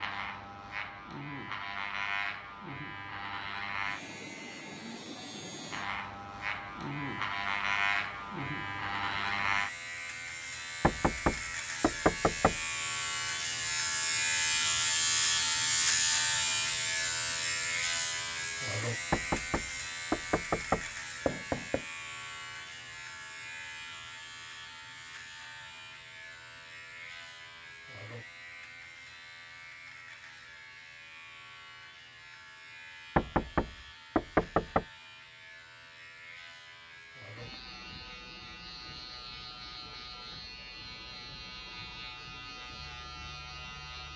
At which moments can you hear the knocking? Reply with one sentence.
You can hear the knocking from 10.8 to 12.6 s, from 19.1 to 21.9 s and from 33.1 to 34.9 s.